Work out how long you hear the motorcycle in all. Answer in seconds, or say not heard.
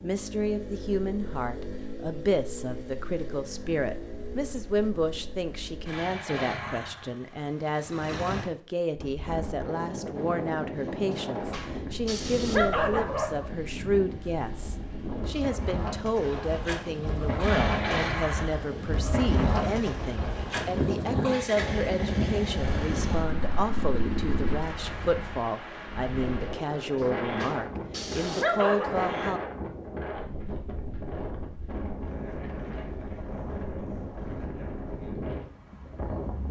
17 s.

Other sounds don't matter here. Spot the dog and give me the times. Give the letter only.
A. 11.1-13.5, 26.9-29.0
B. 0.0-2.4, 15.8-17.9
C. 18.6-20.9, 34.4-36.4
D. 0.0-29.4
A.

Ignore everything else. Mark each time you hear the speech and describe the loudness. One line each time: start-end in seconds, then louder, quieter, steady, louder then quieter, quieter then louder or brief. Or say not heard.
0.0-29.4 steady.